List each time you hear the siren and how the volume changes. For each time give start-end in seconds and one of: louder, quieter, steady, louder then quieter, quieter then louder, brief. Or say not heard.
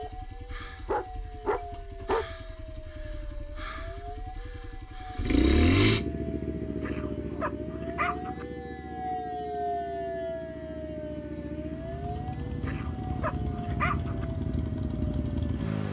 0.0-15.7 louder then quieter.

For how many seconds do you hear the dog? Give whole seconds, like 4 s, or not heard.
5 s.